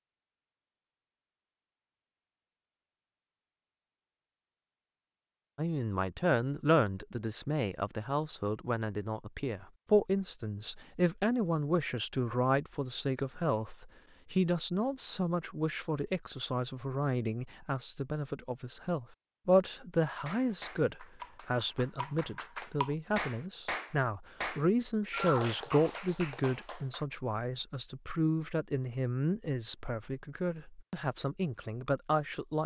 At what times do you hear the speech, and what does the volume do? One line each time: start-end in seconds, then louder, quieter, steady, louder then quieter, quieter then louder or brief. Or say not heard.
5.5-32.6 steady.